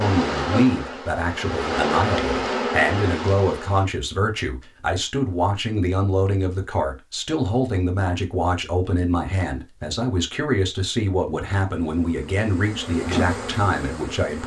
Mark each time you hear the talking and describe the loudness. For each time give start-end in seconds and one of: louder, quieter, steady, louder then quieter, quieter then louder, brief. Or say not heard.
0.0-14.4 steady.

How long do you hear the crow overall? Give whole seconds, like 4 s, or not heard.
not heard.